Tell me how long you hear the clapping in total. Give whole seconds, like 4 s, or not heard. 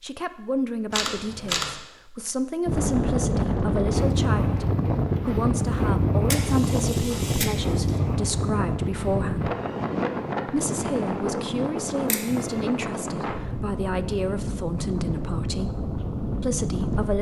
not heard.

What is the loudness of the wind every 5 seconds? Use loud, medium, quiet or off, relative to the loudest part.
loud, loud, medium, medium.